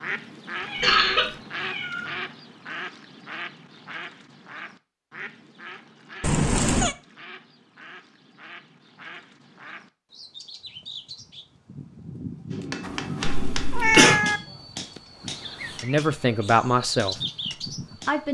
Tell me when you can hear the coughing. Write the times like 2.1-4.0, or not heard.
0.8-1.3, 13.2-14.2.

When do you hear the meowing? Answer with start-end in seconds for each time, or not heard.
0.6-2.3, 6.2-7.0, 12.8-14.4.